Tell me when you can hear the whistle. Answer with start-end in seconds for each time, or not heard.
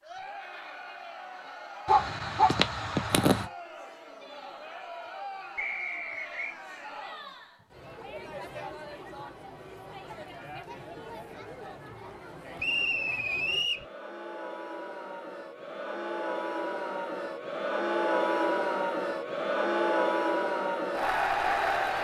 5.5-6.5, 12.6-13.8.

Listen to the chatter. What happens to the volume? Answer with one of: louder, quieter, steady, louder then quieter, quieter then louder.
louder.